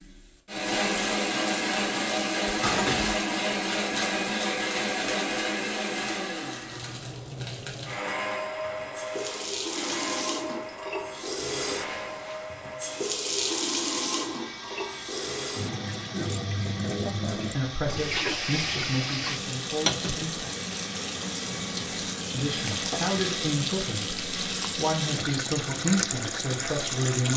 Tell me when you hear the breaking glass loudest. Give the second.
3 s.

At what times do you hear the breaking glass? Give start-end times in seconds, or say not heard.
2.6-3.2, 22.6-23.1.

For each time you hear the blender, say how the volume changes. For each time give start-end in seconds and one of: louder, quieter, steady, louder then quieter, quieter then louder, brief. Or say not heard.
0.0-27.1 quieter.